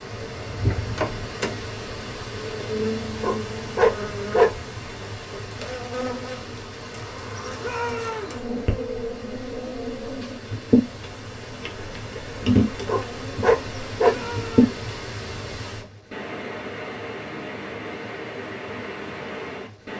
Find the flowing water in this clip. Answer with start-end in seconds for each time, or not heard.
0.0-19.9.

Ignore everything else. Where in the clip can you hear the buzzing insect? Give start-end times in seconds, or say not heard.
0.0-14.8.